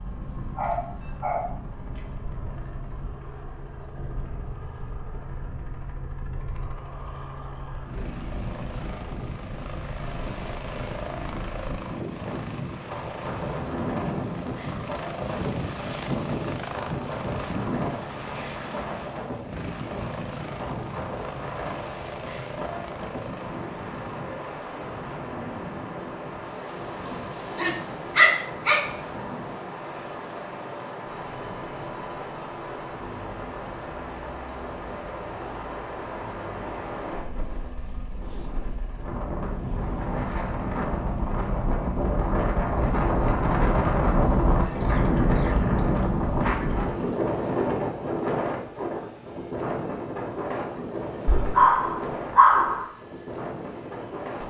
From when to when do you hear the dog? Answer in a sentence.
You can hear the dog from 0.5 to 2.0 s, from 27.1 to 28.8 s and from 51.2 to 52.9 s.